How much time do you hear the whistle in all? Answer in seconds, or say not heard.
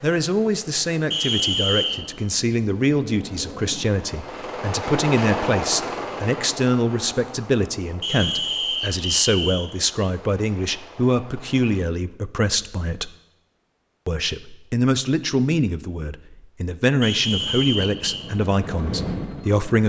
4 s.